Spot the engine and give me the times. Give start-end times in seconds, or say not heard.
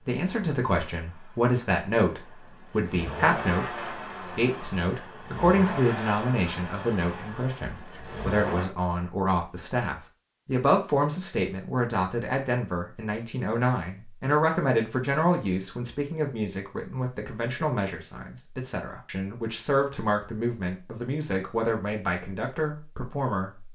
0.0-8.7.